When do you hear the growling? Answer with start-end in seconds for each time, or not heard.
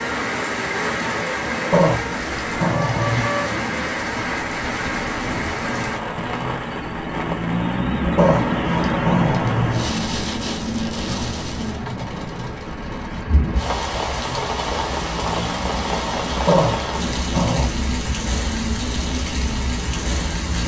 1.7-3.4, 8.2-9.9, 16.4-17.7.